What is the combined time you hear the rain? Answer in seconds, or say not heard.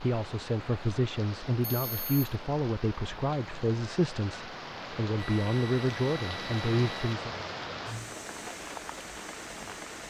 10 s.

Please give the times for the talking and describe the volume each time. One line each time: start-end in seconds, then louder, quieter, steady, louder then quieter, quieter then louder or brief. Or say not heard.
0.0-7.3 steady.